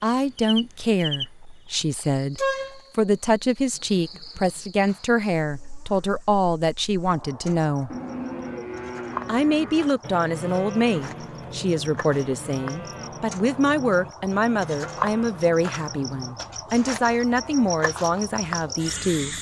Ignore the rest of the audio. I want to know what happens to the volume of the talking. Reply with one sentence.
The volume of the talking stays about the same.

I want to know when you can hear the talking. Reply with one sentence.
You can hear the talking from 0.0 to 7.9 s and from 9.2 to 19.3 s.